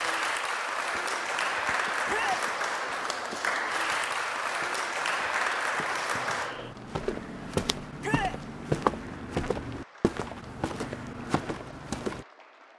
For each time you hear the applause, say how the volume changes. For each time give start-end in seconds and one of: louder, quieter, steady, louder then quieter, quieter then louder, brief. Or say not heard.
0.0-12.7 quieter.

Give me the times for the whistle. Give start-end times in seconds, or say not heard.
not heard.